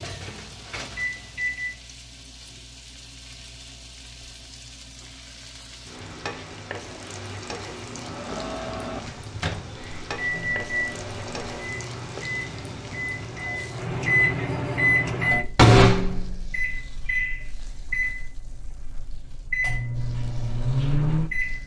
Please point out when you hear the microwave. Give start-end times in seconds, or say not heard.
0.0-1.8, 7.6-21.6.